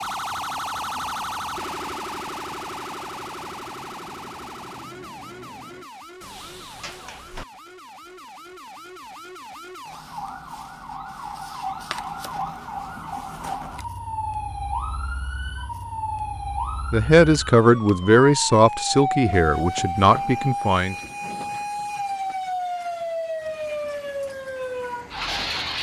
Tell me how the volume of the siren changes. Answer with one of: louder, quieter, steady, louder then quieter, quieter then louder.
quieter then louder.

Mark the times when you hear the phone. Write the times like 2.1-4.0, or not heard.
not heard.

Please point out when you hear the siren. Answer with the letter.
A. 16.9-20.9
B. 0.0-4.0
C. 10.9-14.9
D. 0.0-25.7
D.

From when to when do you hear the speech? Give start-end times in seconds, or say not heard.
16.9-20.9.